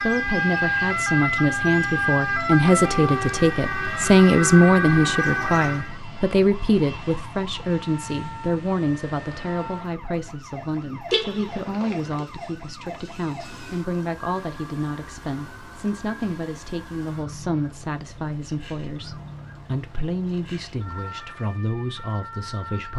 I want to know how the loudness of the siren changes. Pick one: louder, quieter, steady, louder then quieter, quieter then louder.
quieter.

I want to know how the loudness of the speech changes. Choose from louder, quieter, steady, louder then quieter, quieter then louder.
quieter.